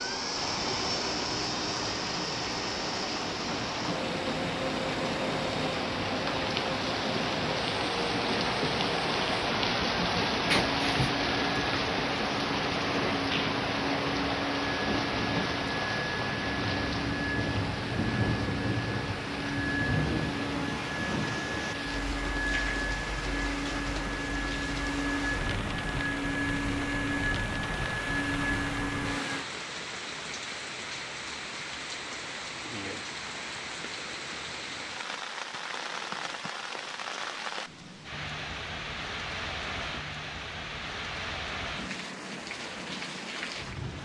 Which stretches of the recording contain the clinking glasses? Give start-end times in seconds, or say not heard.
10.5-11.1.